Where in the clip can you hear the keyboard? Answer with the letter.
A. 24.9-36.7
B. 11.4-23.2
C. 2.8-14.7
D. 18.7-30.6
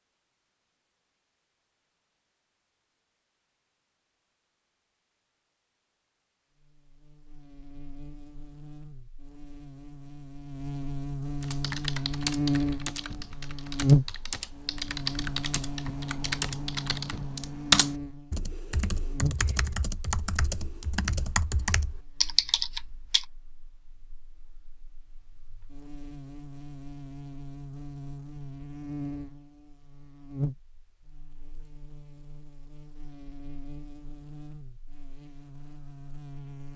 B.